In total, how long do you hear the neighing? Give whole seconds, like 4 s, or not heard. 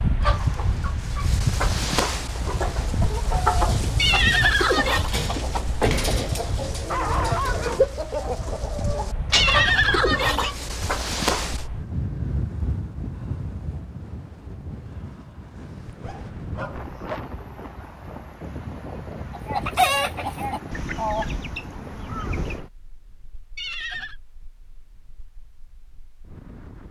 3 s.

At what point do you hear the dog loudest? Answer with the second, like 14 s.
7 s.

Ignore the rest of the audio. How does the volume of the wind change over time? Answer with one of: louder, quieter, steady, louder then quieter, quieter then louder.
quieter.